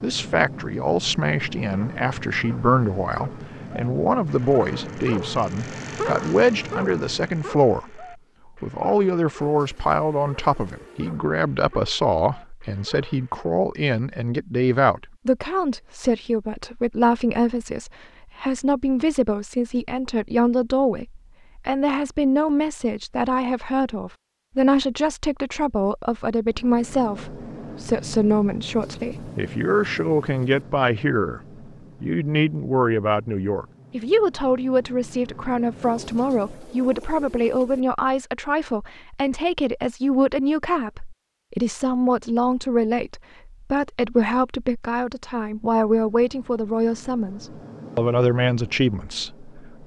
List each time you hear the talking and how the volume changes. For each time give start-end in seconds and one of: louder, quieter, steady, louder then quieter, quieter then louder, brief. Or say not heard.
0.0-49.8 steady.